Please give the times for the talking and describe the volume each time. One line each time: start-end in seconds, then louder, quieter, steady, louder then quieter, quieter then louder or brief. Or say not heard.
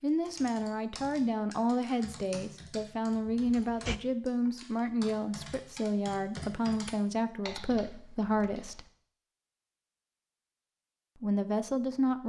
0.0-8.8 steady
11.2-12.2 brief.